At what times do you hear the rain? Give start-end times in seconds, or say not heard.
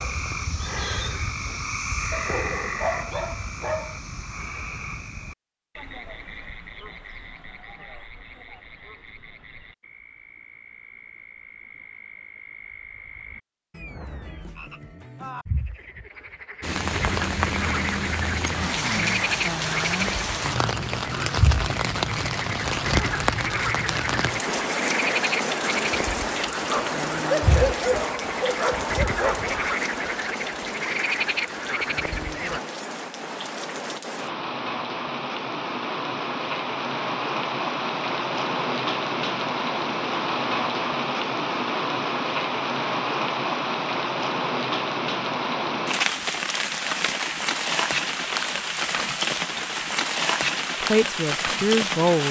16.6-52.2.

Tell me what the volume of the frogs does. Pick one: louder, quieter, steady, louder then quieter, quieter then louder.
quieter then louder.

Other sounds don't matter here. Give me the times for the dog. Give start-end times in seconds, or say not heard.
2.1-4.0, 26.6-29.6.